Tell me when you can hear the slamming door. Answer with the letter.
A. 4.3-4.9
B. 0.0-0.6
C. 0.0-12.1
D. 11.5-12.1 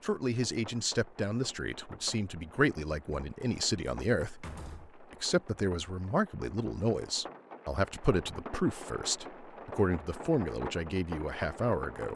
A.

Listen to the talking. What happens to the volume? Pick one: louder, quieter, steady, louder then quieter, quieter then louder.
steady.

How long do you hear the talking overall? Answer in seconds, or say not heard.
12 s.